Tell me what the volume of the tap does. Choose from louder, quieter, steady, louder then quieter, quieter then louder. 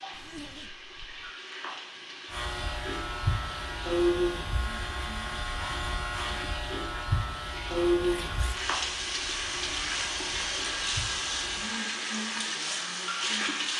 louder.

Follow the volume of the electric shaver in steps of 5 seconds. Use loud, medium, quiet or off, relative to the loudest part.
loud, loud, quiet.